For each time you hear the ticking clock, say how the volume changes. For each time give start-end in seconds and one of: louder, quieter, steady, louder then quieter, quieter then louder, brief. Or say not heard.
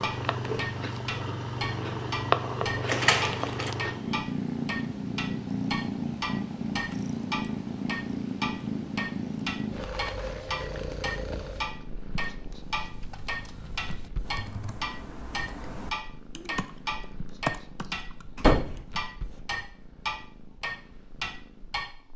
0.0-21.9 steady.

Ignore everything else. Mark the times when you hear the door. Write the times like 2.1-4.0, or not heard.
2.9-3.8, 18.4-18.8.